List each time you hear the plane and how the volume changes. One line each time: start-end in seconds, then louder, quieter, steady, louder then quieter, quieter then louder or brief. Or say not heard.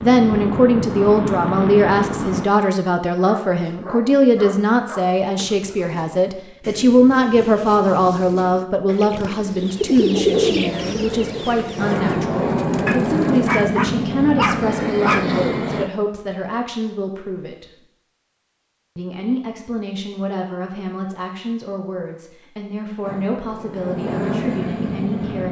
0.0-2.5 brief
10.7-15.9 louder
23.0-25.4 brief.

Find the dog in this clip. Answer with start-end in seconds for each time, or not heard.
3.1-5.9, 12.8-15.3.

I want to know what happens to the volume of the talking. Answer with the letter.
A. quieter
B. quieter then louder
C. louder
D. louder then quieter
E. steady
A.